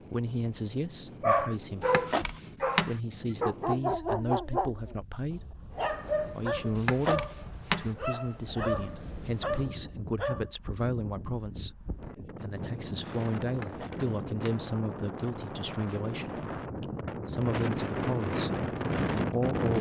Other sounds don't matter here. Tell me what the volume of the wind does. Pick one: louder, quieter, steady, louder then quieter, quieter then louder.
louder.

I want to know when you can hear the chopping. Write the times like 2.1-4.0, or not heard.
1.8-3.0, 6.8-7.9, 13.5-14.7.